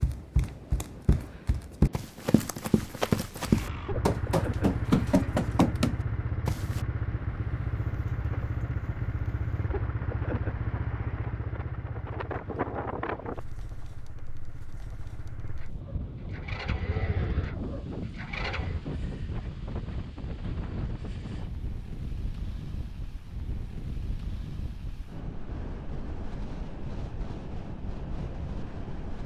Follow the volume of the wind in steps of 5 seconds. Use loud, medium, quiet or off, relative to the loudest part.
medium, quiet, loud, loud, loud, loud.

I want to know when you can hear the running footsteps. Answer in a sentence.
You can hear the running footsteps from 0.0 to 6.8 s.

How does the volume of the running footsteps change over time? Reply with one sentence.
The loudness of the running footsteps goes up.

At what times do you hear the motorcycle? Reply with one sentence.
You can hear the motorcycle from 3.4 to 18.8 s.